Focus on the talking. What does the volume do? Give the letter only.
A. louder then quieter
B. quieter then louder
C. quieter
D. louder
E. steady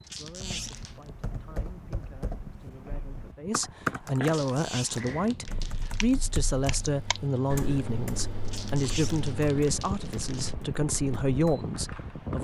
D.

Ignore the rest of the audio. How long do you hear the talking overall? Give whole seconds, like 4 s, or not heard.
12 s.